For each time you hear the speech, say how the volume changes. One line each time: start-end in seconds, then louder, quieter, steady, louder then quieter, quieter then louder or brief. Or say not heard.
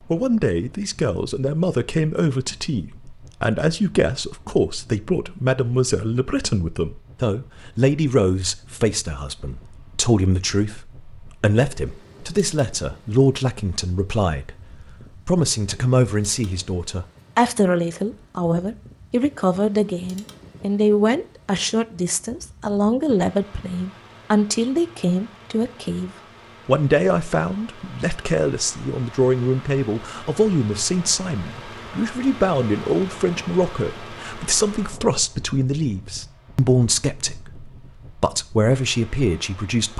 0.1-14.6 steady
15.2-39.9 steady.